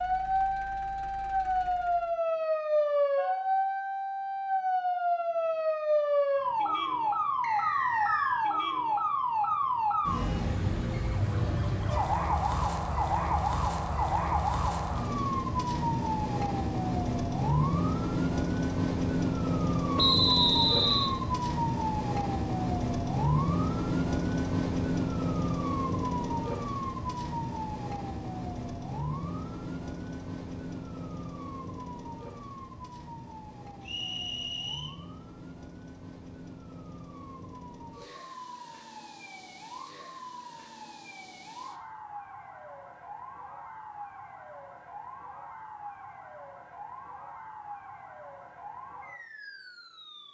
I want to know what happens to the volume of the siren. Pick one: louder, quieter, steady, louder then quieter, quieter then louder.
quieter.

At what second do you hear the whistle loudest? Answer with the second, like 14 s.
20 s.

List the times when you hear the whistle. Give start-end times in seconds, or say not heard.
7.4-8.4, 19.9-21.1, 33.9-35.0.